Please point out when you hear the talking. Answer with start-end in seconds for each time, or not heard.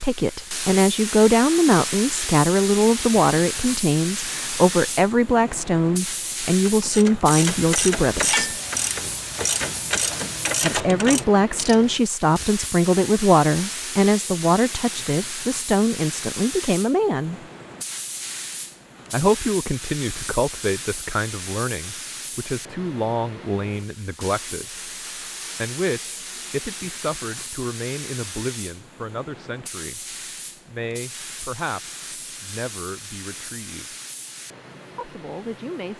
0.0-8.4, 10.6-17.4, 19.1-24.9, 25.6-34.0, 35.0-35.9.